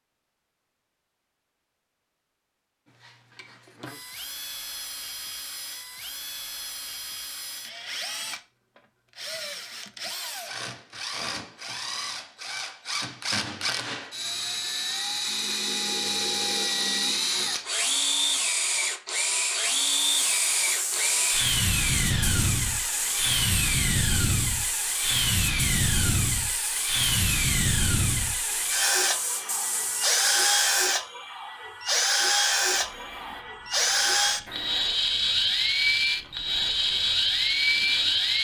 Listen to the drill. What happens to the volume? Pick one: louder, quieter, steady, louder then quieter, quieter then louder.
louder.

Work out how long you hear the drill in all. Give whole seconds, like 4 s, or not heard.
35 s.